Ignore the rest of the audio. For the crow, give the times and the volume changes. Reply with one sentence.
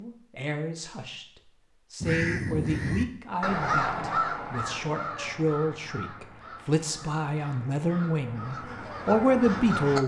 You can hear the crow from 2.0 to 10.0 s, getting quieter then louder.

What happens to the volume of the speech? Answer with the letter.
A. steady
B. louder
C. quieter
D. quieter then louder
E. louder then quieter
B.